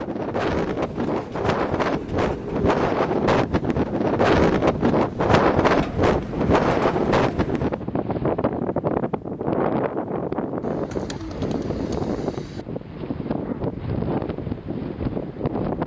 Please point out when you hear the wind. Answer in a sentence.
The wind can be heard from 0.0 to 15.8 s.